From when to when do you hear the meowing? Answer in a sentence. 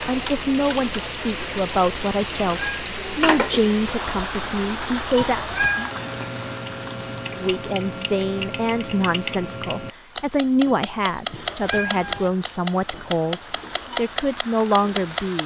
The meowing can be heard from 2.5 to 2.9 s, from 5.2 to 6.0 s and from 11.3 to 12.3 s.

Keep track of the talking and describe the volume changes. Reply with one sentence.
The volume of the talking stays about the same.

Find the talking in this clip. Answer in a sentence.
You can hear the talking from 0.1 to 5.5 s and from 7.3 to 15.4 s.